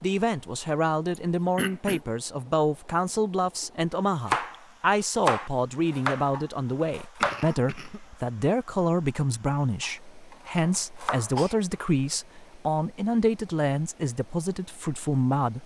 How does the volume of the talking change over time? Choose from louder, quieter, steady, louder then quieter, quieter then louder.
steady.